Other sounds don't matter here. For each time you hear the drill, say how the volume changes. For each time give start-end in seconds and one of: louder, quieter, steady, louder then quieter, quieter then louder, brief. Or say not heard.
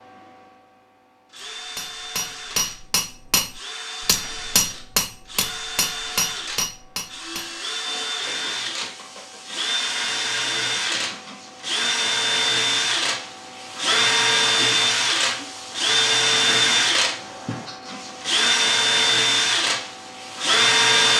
0.0-21.1 louder.